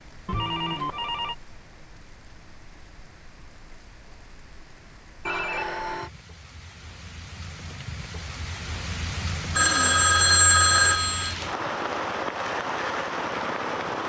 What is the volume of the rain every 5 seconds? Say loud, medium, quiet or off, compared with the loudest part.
quiet, medium, loud.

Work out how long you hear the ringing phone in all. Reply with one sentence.
You can hear the ringing phone for 4 seconds altogether.